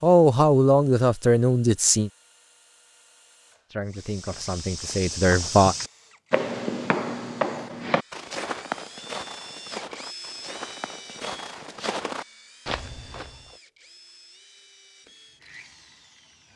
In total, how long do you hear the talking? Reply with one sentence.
You can hear the talking for 4 seconds altogether.